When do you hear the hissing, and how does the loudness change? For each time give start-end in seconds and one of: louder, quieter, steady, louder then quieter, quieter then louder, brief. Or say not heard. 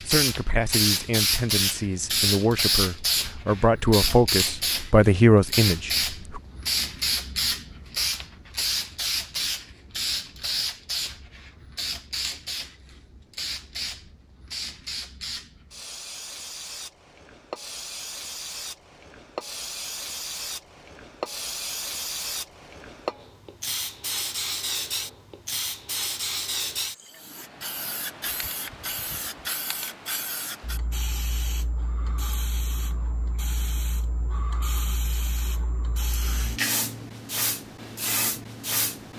0.0-39.1 quieter.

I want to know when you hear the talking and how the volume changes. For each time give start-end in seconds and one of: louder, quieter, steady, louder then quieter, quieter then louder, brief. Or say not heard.
0.0-6.4 louder.